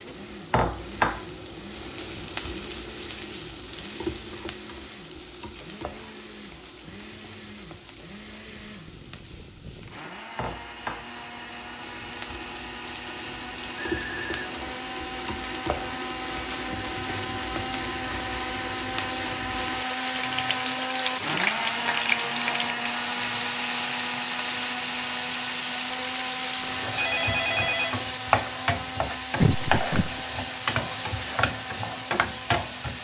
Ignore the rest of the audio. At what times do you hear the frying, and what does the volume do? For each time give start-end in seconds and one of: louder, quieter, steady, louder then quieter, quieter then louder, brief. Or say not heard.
0.0-32.9 quieter then louder.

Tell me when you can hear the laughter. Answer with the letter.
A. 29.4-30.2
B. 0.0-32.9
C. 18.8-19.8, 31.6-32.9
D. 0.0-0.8
A.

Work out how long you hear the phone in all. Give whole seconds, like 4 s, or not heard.
2 s.